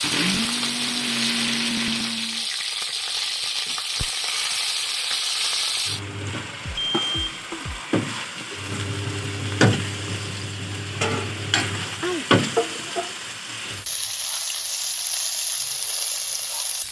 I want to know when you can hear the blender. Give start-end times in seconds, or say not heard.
0.0-2.5.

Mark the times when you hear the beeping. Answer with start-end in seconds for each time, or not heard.
6.6-7.8.